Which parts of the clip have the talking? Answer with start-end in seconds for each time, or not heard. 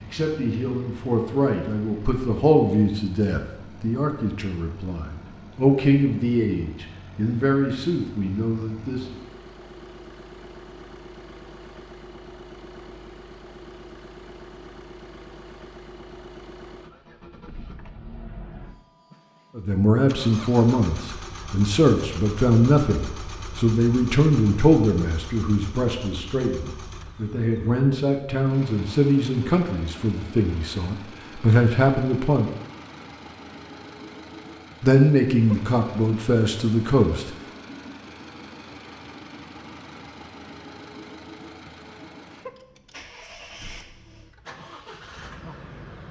0.0-9.2, 19.6-32.5, 34.8-37.3.